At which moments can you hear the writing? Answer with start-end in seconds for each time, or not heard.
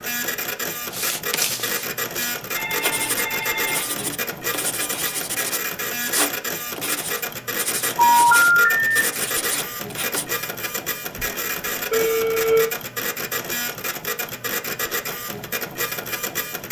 0.9-10.2.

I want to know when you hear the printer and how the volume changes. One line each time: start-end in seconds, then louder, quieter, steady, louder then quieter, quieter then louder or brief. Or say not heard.
0.0-16.6 steady.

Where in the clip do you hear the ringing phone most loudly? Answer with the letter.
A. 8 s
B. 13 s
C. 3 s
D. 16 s
A.